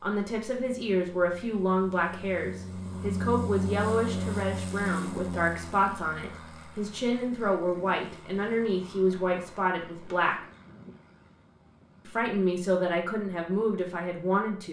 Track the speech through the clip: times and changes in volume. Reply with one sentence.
You can hear the speech from 0.0 to 10.3 s, at a steady volume; and briefly from 12.1 to 14.6 s.